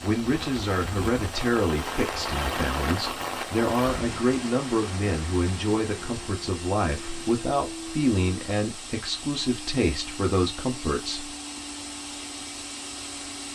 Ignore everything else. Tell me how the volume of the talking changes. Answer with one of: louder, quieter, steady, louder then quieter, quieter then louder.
steady.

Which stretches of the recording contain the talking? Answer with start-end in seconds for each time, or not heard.
0.0-11.3.